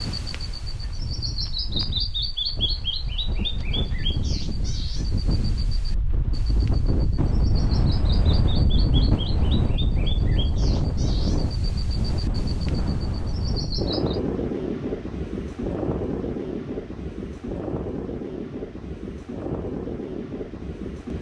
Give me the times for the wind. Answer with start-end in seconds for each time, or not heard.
0.0-21.1.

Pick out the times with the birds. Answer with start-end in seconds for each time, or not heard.
0.0-14.2.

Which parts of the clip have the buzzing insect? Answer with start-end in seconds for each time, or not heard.
not heard.